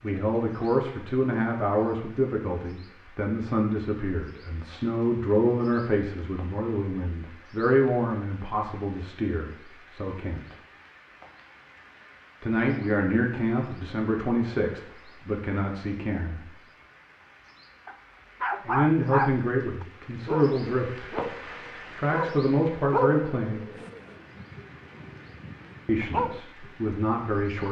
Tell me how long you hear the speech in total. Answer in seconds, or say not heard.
21 s.